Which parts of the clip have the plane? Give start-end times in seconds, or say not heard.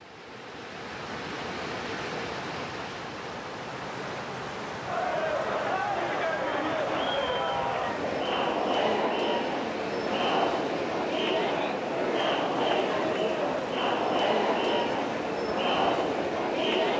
not heard.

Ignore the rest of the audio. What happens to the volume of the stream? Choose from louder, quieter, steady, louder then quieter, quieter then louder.
steady.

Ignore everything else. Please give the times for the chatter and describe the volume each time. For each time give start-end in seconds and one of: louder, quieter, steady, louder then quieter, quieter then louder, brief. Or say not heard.
4.8-16.9 steady.